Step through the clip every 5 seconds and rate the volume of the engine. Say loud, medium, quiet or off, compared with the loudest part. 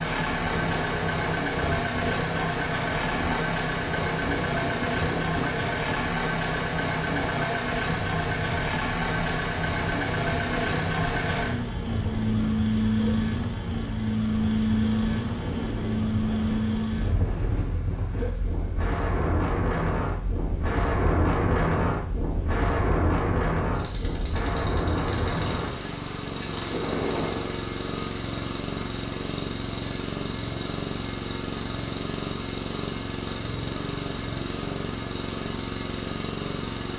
loud, loud, loud, medium, quiet, medium, medium, medium.